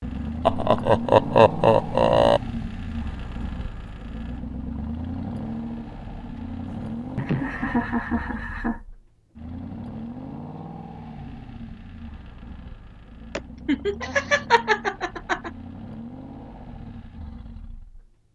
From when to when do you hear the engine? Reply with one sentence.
You can hear the engine from 0.0 to 18.3 s.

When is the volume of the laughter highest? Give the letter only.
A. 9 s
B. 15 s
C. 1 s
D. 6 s
C.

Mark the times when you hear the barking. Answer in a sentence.
You can't hear the barking here.